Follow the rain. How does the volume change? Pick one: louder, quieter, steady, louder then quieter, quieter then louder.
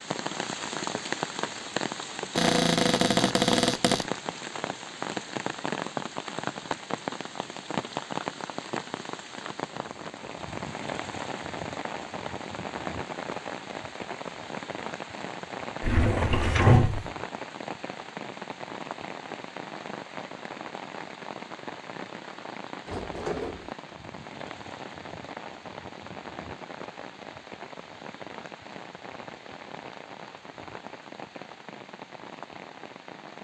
quieter.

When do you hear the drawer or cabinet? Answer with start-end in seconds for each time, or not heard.
2.4-4.0, 15.8-17.1, 22.9-23.8.